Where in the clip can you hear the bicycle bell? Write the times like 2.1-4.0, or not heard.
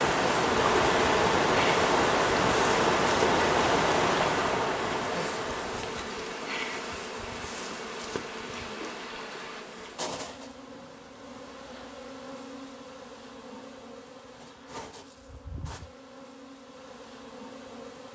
not heard.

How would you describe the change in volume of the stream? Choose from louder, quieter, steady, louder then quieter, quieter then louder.
quieter.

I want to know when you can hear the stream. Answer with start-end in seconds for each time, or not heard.
0.0-9.7.